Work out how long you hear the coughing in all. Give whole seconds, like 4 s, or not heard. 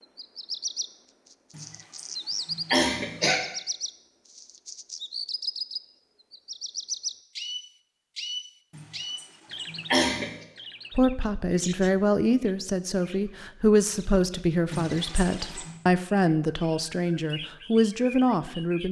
5 s.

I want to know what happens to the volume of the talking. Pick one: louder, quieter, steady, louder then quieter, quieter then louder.
steady.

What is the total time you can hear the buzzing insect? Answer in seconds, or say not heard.
not heard.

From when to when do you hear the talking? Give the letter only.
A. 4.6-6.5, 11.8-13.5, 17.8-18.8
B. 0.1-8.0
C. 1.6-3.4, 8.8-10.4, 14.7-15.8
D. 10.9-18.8
D.